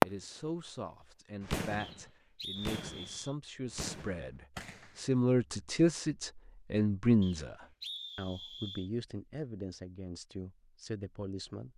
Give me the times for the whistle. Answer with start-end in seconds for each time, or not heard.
1.8-3.4, 7.2-8.9.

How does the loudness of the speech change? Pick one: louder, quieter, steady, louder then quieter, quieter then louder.
louder then quieter.